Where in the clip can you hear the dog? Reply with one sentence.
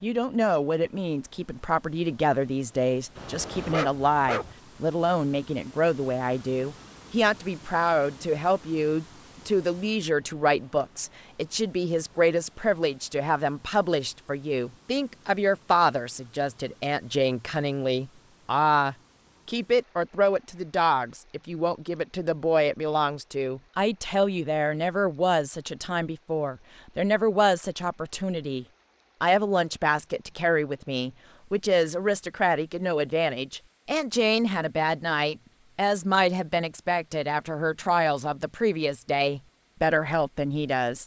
You can hear the dog from 3.1 to 4.5 s.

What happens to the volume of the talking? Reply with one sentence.
The volume of the talking stays about the same.